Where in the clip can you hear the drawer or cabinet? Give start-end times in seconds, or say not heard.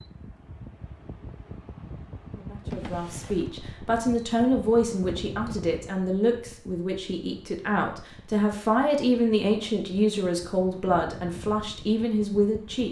2.7-3.7.